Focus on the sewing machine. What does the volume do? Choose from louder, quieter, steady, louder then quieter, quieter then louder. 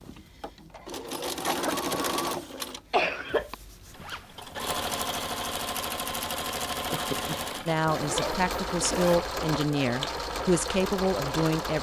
quieter then louder.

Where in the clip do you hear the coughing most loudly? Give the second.
3 s.